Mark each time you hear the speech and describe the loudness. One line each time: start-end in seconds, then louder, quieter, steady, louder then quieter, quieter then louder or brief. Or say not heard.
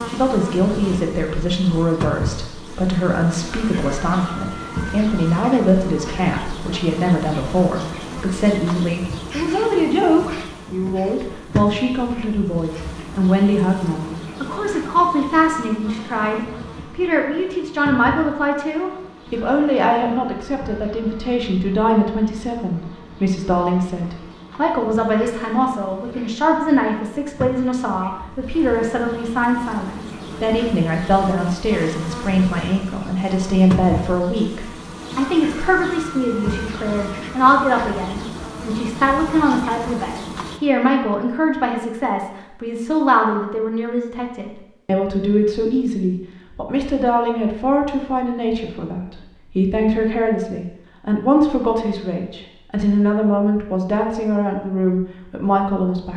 0.1-56.1 steady.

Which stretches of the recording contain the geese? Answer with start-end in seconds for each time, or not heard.
not heard.